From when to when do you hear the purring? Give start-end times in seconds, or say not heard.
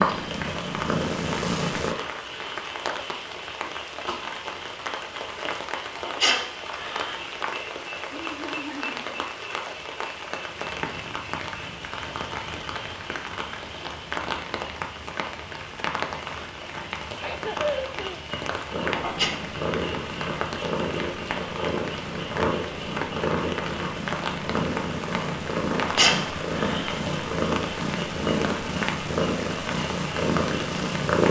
0.0-1.9, 18.7-31.2.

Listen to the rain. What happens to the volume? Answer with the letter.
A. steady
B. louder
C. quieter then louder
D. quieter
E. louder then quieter
A.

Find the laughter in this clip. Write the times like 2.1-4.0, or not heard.
8.1-9.2, 17.2-18.3.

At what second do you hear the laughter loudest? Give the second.
18 s.